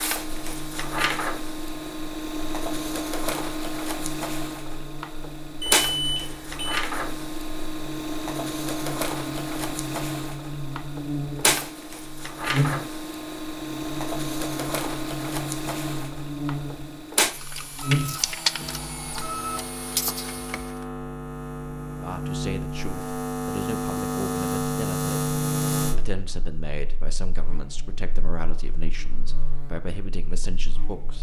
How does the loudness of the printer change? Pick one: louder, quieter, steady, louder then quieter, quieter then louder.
steady.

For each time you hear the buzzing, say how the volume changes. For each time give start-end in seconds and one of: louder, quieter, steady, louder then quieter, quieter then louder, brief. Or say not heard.
0.2-31.1 louder.